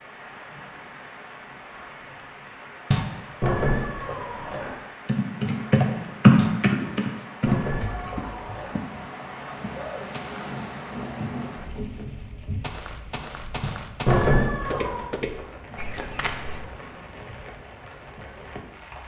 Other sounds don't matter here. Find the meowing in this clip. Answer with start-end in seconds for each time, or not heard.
3.4-4.8, 7.5-8.8, 14.1-15.1.